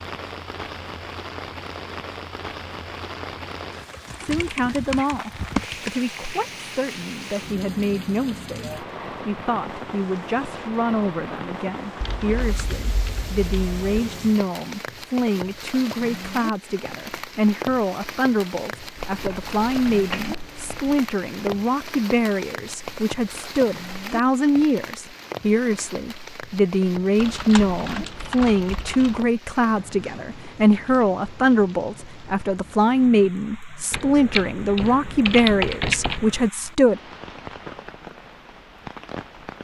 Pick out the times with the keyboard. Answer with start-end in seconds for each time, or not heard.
3.9-6.1, 12.0-14.0, 18.9-21.0, 27.2-29.2, 33.9-36.5.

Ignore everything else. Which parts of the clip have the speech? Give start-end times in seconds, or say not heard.
4.2-37.0.